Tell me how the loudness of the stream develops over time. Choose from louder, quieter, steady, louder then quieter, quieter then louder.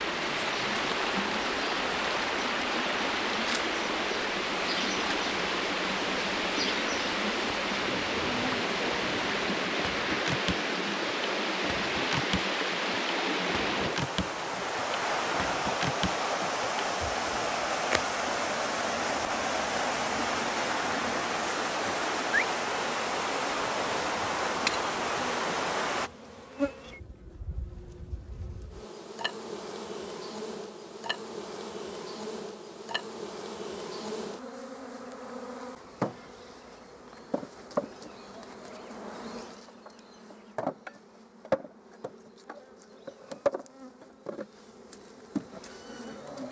steady.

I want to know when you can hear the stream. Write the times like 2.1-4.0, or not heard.
0.0-26.1.